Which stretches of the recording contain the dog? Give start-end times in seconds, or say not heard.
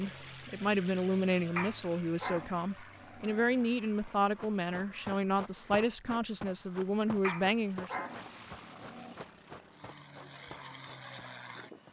1.6-3.5, 7.2-9.2.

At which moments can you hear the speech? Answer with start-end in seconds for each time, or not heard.
0.0-8.1.